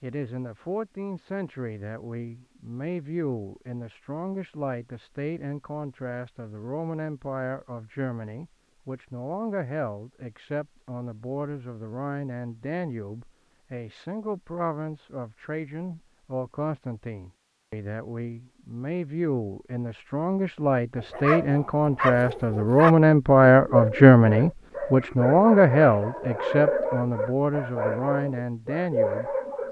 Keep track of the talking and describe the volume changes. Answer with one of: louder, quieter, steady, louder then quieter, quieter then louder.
louder.